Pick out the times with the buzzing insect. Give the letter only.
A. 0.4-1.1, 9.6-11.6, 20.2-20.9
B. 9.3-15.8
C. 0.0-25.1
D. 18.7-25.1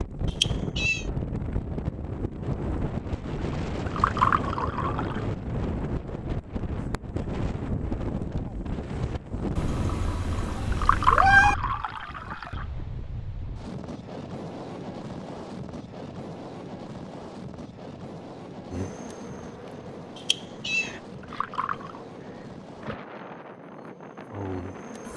D.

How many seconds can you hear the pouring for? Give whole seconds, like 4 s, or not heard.
5 s.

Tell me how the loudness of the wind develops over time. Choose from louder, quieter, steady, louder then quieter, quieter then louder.
quieter.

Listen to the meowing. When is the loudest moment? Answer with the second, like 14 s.
11 s.